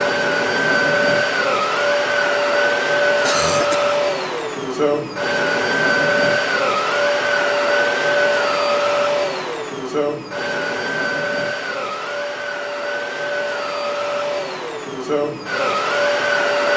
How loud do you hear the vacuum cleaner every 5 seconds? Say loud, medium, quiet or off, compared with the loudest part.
loud, loud, medium, loud.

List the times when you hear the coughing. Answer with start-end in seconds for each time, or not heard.
3.2-4.0.